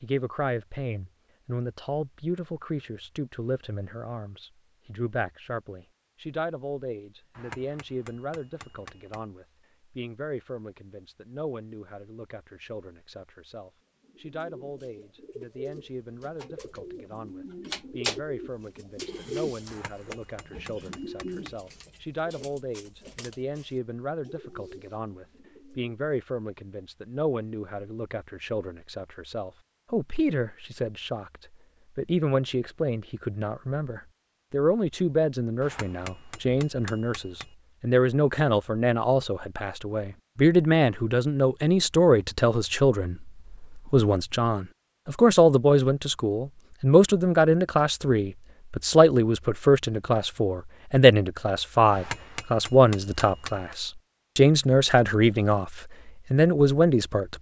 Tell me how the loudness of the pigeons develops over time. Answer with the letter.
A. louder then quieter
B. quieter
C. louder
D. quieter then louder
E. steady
A.